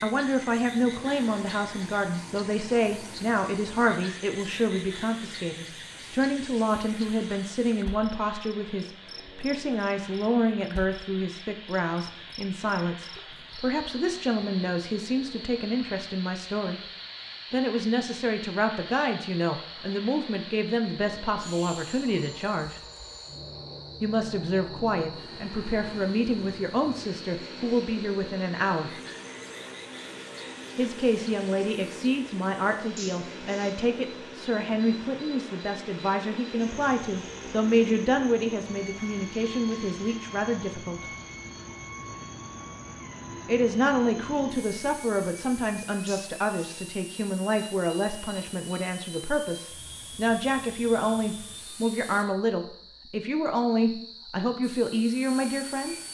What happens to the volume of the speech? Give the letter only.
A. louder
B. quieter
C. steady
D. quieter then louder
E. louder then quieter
C.